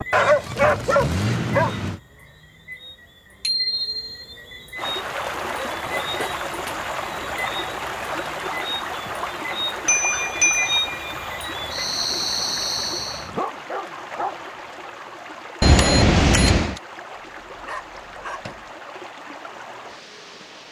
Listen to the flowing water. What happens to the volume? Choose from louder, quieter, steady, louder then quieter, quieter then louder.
quieter.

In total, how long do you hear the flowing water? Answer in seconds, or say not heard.
16 s.